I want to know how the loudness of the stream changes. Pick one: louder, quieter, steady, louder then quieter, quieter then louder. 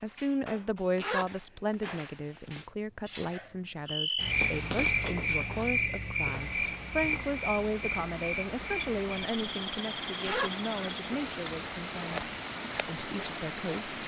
louder.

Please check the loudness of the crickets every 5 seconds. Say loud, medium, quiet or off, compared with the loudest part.
loud, loud, medium.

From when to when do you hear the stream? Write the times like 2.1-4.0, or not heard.
6.2-14.0.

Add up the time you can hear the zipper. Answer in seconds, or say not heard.
2 s.